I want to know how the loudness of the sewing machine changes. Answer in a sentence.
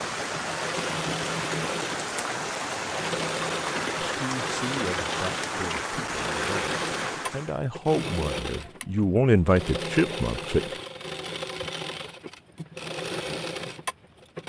The loudness of the sewing machine stays about the same.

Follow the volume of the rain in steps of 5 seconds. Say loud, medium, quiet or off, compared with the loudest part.
loud, loud, off.